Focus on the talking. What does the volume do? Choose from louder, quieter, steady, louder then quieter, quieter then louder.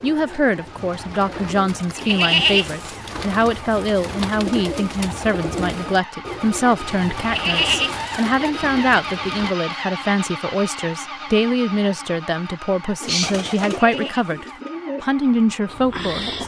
steady.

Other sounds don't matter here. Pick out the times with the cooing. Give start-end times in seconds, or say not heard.
0.0-9.6, 13.0-16.4.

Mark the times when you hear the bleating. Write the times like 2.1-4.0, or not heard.
1.9-3.0, 7.2-8.1, 13.8-14.4.